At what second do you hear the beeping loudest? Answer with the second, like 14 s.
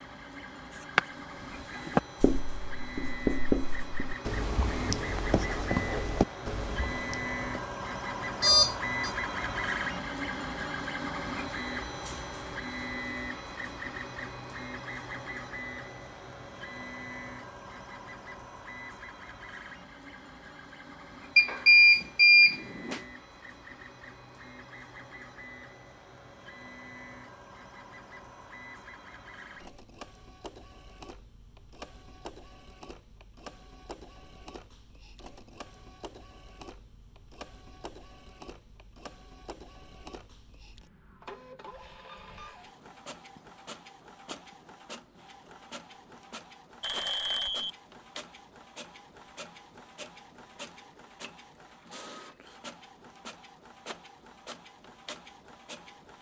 22 s.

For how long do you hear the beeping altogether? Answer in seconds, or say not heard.
3 s.